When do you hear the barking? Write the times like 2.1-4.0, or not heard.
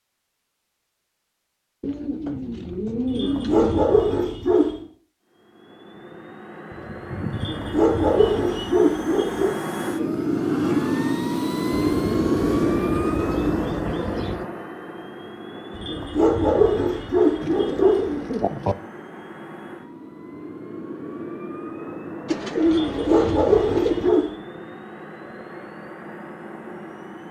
3.0-4.8, 7.3-9.6, 15.7-18.2, 22.6-24.3.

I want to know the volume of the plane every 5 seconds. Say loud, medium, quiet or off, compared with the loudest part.
off, medium, loud, quiet, quiet, quiet.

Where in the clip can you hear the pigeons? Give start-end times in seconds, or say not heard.
1.8-3.9, 6.7-8.8, 11.7-14.4, 17.4-18.8, 22.2-24.1.